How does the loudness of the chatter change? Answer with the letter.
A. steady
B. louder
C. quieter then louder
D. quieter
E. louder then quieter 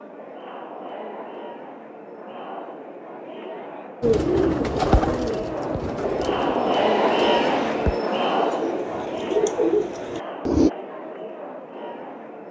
E.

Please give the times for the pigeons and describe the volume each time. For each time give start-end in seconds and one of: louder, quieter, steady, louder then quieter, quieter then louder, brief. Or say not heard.
4.0-10.7 quieter then louder.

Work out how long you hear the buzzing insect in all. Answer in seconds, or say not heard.
not heard.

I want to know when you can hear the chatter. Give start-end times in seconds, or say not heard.
0.0-12.4.